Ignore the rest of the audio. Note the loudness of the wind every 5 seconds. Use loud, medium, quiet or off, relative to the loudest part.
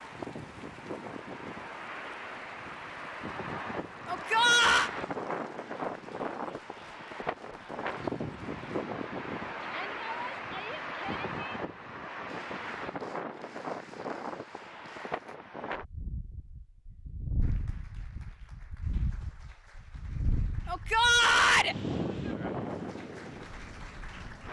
loud, loud, loud, medium, loud.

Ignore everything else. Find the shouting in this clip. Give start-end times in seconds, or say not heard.
4.0-4.9, 9.6-11.6, 20.6-21.8.